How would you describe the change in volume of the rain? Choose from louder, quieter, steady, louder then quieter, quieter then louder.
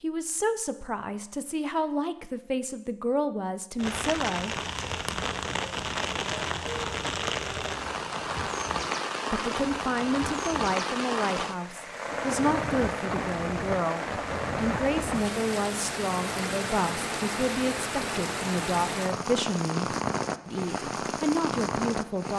steady.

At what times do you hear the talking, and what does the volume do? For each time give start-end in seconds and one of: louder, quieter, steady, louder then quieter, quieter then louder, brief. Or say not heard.
0.0-4.5 steady
9.3-22.3 steady.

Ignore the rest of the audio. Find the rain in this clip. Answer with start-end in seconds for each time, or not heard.
3.8-22.3.